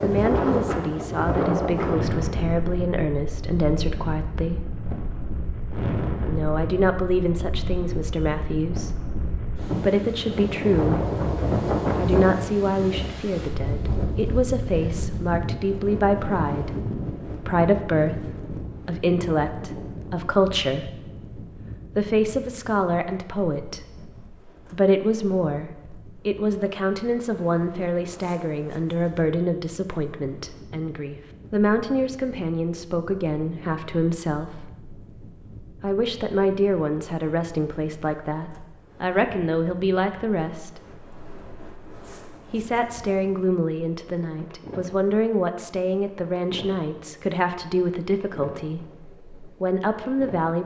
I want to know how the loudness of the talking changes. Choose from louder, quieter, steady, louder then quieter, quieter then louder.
steady.